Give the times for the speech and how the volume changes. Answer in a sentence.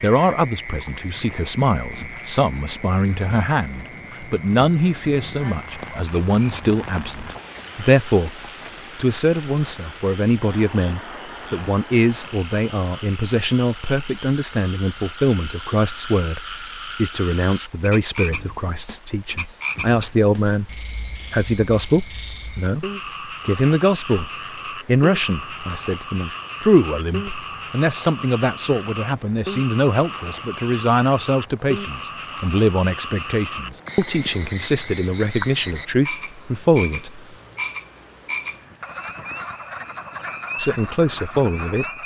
You can hear the speech from 0.0 to 22.9 s, at a steady volume; from 23.4 to 37.2 s, at a steady volume; and briefly from 40.5 to 41.9 s.